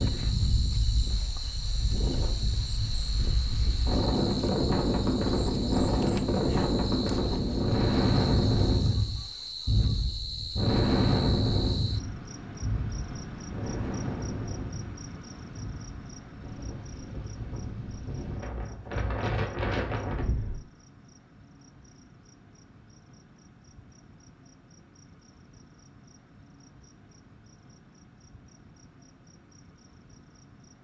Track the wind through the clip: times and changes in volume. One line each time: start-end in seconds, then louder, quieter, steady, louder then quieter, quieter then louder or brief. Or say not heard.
0.0-20.6 louder then quieter.